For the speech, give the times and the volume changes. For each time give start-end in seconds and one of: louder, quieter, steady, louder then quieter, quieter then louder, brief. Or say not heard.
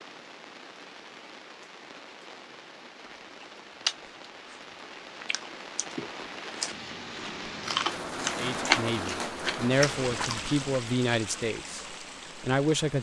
8.3-12.9 louder then quieter.